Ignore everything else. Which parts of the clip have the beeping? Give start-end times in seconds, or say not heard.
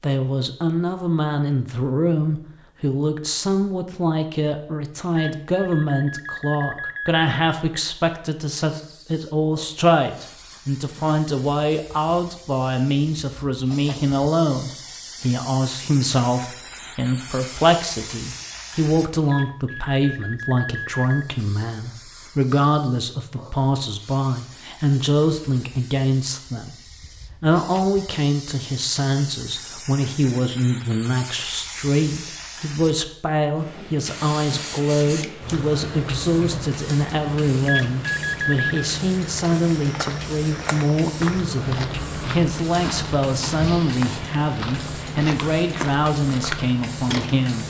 5.0-7.2, 19.1-21.2, 37.5-38.8.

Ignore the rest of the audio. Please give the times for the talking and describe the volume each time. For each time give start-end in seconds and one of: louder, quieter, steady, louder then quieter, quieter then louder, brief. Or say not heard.
0.0-47.6 steady.